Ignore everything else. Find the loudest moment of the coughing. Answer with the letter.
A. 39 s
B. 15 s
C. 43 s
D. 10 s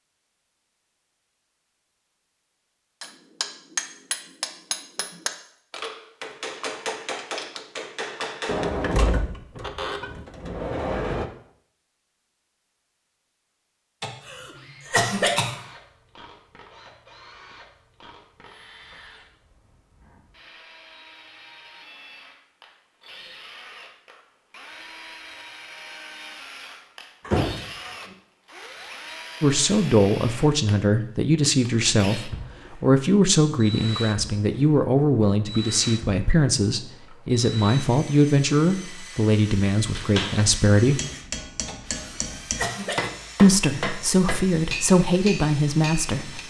B.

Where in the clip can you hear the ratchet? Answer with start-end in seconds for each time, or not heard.
not heard.